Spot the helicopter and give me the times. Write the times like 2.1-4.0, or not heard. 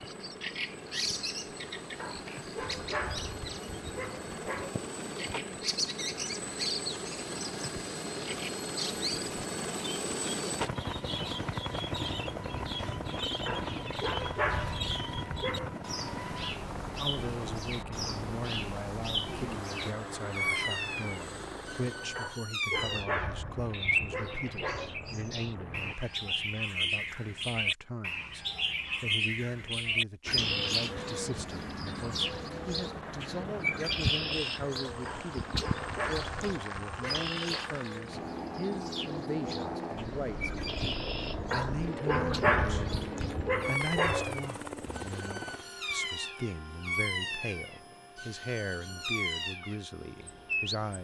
0.0-25.9, 30.2-50.9.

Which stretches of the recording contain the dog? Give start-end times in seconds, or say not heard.
1.9-4.8, 13.4-15.7, 22.1-24.9, 35.0-37.6, 41.5-44.4.